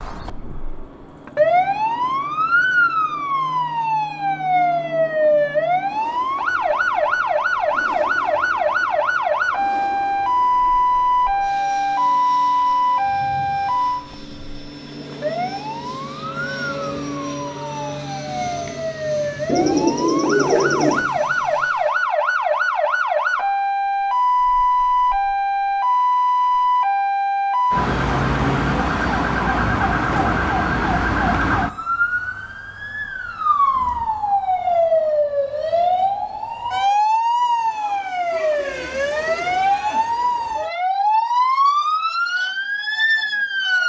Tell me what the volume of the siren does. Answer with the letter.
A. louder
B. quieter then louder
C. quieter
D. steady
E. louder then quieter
D.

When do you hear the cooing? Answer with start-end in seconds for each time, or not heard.
19.4-21.1.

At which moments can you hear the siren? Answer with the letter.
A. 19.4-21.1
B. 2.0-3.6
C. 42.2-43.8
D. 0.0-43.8
D.